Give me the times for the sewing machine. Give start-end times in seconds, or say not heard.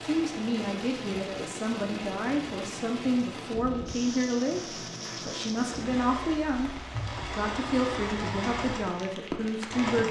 0.0-10.0.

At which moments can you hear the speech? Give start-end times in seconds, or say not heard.
0.0-10.0.